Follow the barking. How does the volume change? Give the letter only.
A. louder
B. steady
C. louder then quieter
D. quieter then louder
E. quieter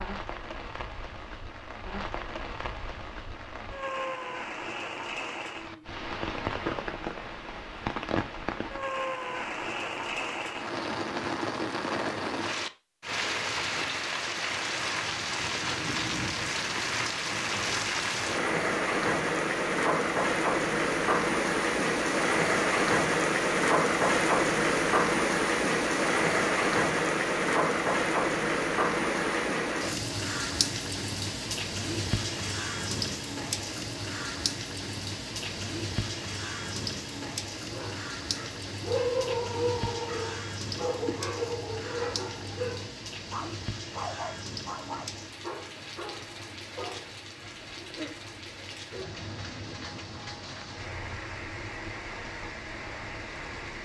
E.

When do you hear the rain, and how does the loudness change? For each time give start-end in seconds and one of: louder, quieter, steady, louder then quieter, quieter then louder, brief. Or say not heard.
0.0-53.8 louder then quieter.